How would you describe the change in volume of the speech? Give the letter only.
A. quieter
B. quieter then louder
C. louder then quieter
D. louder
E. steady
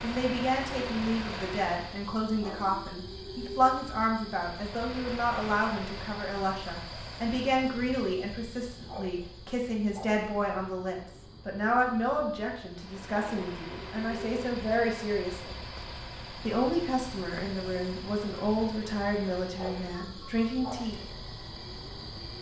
E.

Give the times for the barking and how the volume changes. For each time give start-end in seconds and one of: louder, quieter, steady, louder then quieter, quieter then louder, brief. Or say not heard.
not heard.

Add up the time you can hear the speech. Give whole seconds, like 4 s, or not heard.
20 s.